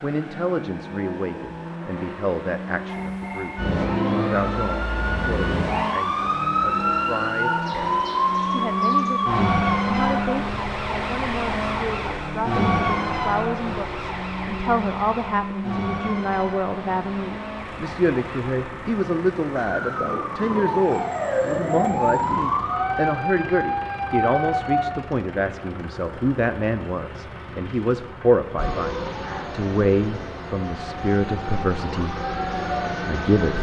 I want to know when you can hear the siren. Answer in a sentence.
You can hear the siren from 3.5 to 24.9 s and from 28.6 to 33.5 s.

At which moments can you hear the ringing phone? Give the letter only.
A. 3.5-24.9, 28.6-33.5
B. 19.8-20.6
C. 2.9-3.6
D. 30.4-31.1
C.